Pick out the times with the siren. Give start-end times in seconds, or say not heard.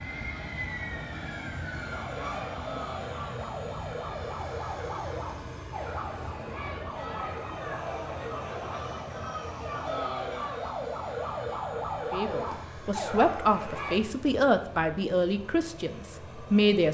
0.0-13.9.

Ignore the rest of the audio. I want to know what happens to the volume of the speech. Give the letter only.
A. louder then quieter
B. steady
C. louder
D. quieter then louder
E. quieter
E.